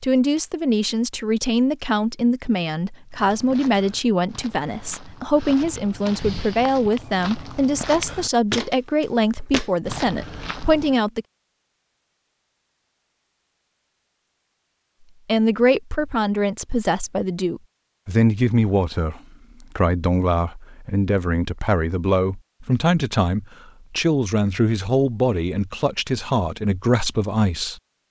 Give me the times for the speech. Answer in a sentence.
The speech can be heard from 0.0 to 11.2 s and from 15.2 to 27.8 s.